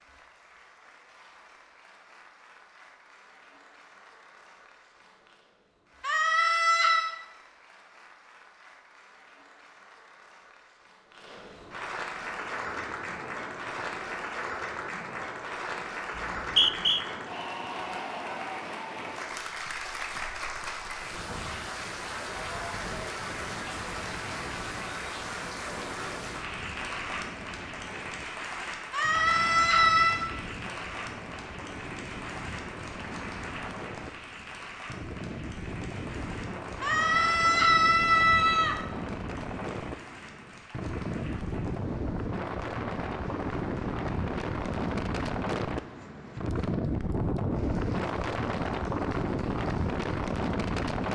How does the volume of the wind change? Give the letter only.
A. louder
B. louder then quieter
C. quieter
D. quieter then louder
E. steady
A.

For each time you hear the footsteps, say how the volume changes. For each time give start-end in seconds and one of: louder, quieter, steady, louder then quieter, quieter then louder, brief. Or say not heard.
not heard.